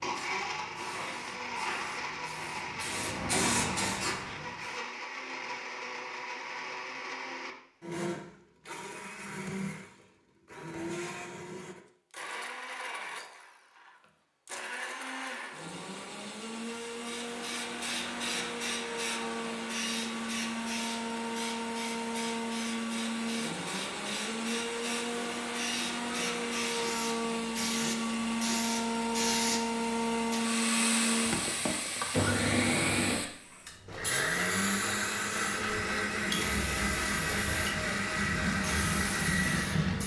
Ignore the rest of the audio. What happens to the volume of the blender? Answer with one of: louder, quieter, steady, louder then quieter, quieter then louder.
louder.